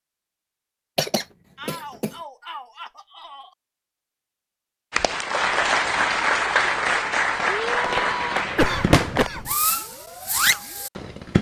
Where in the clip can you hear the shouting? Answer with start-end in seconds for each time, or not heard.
1.6-3.5, 7.5-8.2.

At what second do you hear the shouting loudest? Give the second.
8 s.